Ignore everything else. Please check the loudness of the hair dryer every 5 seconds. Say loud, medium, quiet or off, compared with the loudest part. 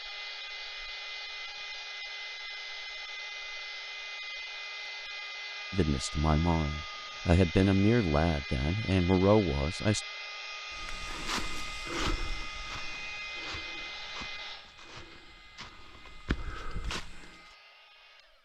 loud, loud, loud, quiet.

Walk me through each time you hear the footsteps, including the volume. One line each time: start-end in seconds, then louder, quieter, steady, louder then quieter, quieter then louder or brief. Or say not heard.
10.8-17.4 quieter then louder.